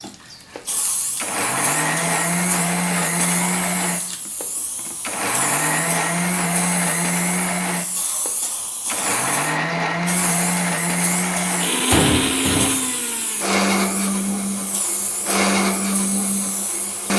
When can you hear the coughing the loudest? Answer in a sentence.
The volume of the coughing peaks at 12 seconds.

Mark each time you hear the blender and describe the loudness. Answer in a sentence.
You can hear the blender from 0.0 to 17.1 s, at a steady volume.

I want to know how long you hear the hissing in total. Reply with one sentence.
You can hear the hissing for 17 seconds altogether.